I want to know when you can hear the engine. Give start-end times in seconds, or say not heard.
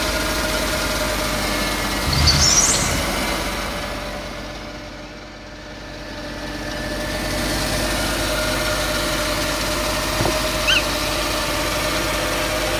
0.0-12.7.